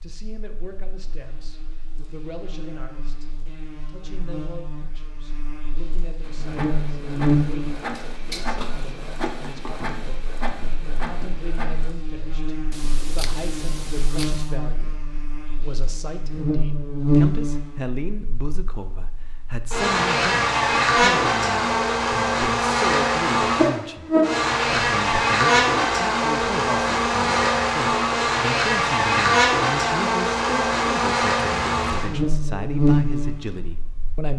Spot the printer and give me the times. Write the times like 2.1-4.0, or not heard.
6.2-11.9.